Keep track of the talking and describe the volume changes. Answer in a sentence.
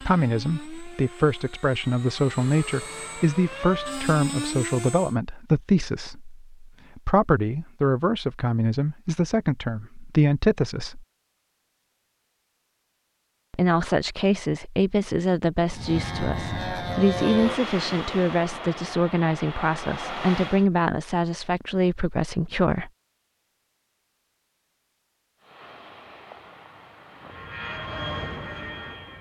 The loudness of the talking stays about the same.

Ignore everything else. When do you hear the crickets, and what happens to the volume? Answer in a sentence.
You can't hear the crickets here.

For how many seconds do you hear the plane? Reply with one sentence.
The plane can be heard for 14 seconds in total.